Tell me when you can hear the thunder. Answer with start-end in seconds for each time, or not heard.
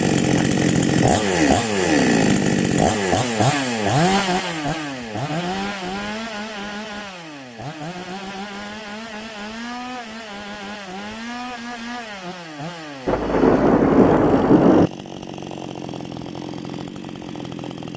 13.1-14.9.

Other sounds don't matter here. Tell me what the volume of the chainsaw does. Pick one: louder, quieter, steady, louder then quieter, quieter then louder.
quieter.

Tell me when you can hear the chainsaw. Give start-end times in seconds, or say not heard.
0.0-17.9.